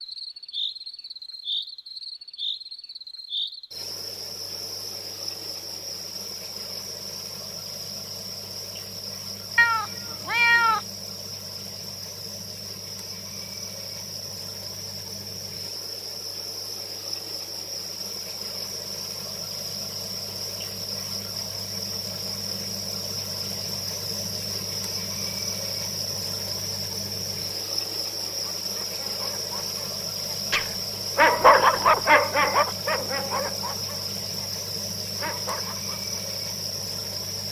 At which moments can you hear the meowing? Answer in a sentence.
The meowing can be heard from 9.6 to 10.8 s.